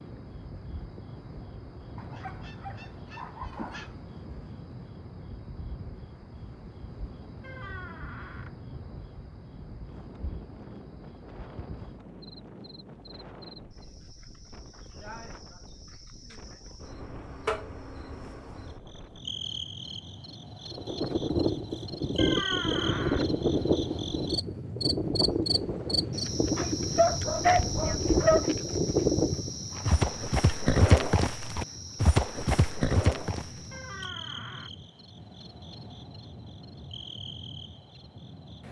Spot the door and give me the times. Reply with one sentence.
The door can be heard from 7.4 to 8.6 s, from 22.1 to 23.2 s and from 33.7 to 34.7 s.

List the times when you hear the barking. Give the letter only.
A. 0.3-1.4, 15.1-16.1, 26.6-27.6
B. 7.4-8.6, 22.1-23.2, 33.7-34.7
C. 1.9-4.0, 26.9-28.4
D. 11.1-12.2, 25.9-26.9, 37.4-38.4
C.